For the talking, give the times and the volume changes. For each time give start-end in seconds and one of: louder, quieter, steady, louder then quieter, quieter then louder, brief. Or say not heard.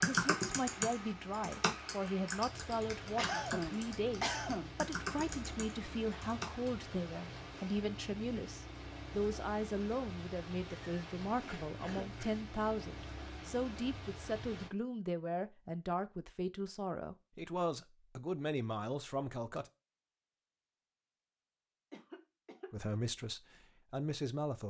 0.0-19.7 steady
22.7-24.6 brief.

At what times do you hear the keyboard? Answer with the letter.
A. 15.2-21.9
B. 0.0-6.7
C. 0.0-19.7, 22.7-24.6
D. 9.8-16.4
B.